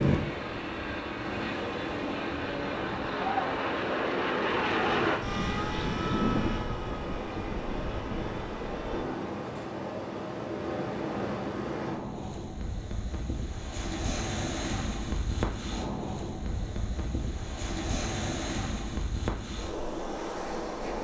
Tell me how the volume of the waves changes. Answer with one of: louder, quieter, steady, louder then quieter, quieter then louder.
steady.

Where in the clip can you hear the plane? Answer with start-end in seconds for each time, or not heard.
0.0-9.1.